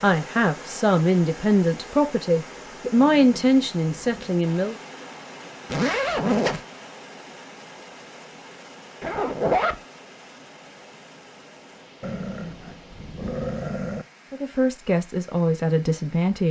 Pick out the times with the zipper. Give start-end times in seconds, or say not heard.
5.7-6.6, 9.0-9.8.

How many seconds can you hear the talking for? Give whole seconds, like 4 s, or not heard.
7 s.